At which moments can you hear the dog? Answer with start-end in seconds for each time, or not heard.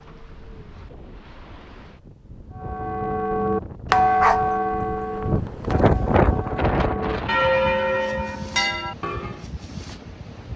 4.2-5.2.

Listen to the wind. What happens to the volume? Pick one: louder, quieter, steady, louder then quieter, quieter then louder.
louder then quieter.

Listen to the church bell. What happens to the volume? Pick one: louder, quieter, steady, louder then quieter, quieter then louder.
quieter then louder.